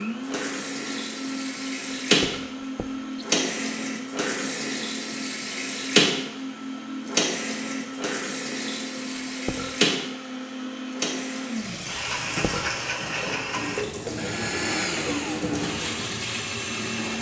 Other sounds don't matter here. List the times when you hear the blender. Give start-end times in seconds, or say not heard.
0.0-17.1.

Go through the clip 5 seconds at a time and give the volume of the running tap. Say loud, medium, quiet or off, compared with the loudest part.
loud, loud, medium, medium.